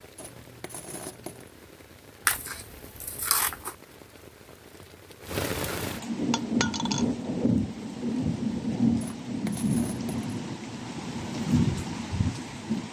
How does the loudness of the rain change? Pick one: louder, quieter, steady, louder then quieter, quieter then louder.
louder.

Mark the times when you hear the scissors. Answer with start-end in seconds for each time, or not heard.
2.2-3.8.